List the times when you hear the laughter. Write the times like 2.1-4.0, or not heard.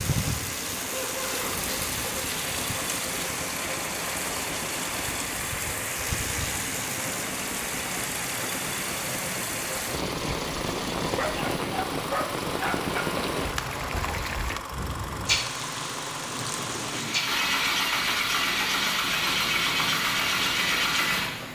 0.9-1.6, 13.8-14.3.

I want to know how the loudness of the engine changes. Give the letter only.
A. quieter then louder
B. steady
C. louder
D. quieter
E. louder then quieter
C.